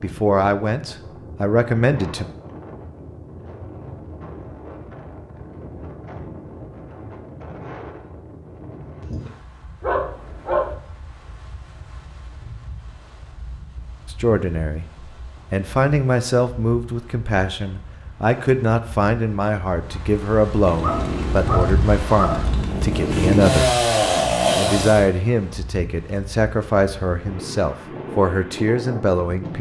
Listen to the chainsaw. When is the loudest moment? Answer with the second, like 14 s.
24 s.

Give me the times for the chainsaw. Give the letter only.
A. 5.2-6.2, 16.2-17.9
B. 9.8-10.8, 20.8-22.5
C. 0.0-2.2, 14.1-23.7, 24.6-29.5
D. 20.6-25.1
D.